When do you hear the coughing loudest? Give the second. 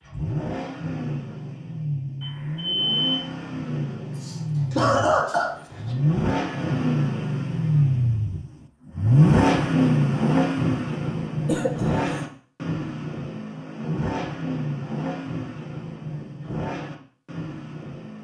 5 s.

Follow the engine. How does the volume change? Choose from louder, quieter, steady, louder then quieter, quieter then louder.
louder then quieter.